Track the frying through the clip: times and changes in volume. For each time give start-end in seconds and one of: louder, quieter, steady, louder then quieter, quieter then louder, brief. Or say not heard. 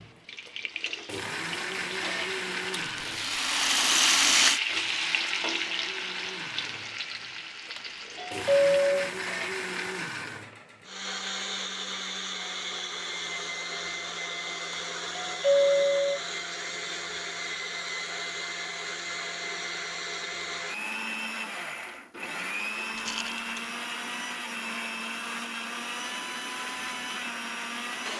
0.0-8.6 louder then quieter.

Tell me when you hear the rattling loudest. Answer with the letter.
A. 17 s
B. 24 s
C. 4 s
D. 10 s
C.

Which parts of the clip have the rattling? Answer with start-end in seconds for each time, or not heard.
2.8-4.6, 22.9-23.7.